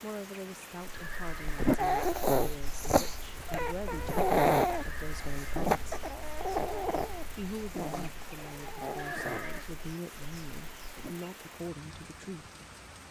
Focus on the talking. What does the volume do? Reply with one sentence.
The volume of the talking stays about the same.